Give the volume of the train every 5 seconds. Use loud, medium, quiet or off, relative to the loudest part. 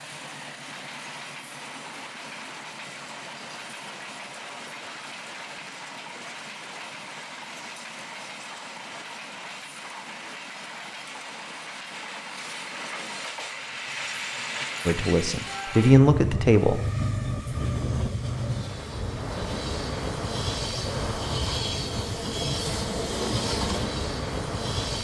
medium, medium, medium, loud, loud.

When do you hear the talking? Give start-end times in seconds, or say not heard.
14.8-16.8.